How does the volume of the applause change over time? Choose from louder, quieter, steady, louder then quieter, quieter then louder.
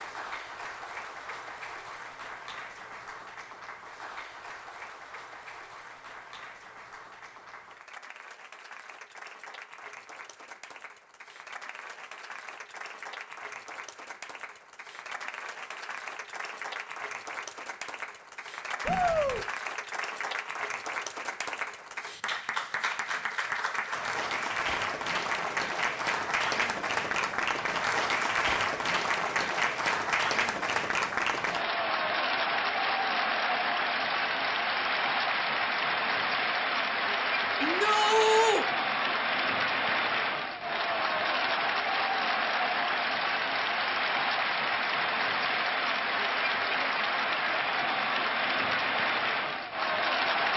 louder.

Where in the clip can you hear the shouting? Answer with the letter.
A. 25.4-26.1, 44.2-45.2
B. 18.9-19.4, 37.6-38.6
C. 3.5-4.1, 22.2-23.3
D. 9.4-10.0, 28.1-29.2
B.